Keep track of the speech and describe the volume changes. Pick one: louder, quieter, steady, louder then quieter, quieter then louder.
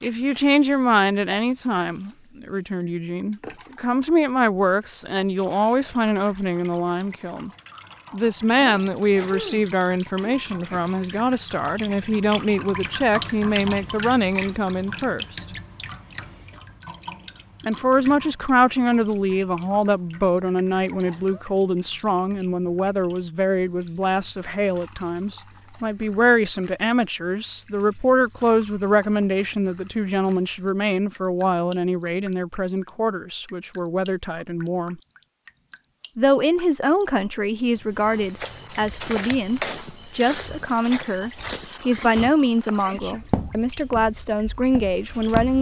steady.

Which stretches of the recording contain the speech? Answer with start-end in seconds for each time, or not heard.
0.0-7.5, 8.1-15.4, 17.6-35.0, 36.1-45.5.